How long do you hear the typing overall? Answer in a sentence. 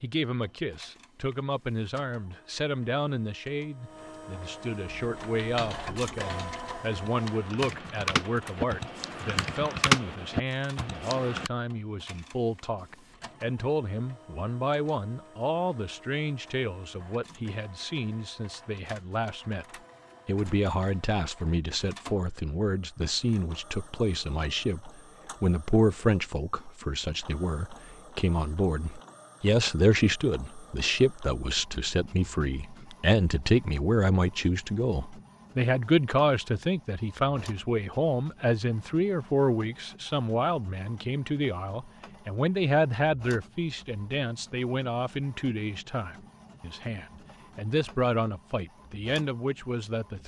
The typing can be heard for 7 seconds in total.